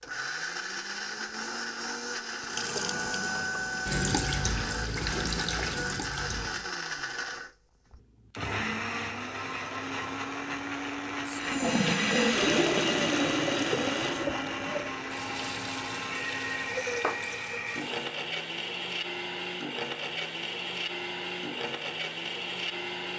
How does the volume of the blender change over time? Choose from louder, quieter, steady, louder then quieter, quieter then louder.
steady.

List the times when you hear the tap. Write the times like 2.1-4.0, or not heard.
2.5-6.7, 11.2-18.1.